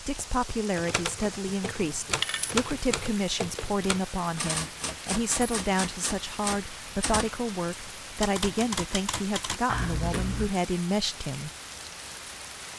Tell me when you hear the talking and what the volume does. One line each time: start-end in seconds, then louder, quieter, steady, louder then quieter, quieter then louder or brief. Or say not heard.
0.0-11.5 steady.